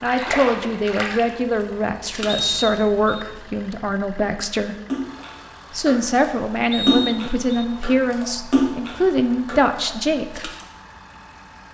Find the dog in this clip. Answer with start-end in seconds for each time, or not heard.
not heard.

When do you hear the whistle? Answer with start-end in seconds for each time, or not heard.
2.2-3.2, 6.7-7.7.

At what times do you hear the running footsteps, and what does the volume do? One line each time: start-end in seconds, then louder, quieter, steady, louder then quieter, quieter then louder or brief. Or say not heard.
not heard.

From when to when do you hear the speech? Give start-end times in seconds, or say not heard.
0.0-4.8, 5.7-10.5.